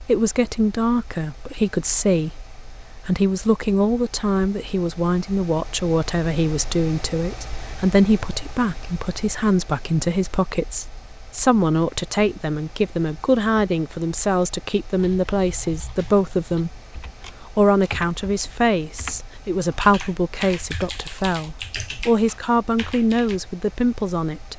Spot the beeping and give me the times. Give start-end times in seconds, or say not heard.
not heard.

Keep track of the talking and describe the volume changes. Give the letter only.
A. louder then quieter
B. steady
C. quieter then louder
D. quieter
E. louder
B.